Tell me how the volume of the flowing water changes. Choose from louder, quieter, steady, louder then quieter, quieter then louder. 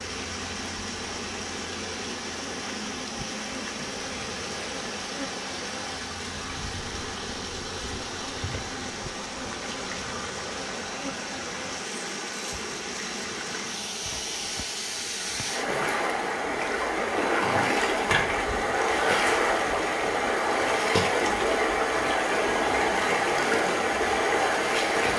louder.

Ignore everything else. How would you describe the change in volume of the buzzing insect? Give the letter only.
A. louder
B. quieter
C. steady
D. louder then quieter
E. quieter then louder
C.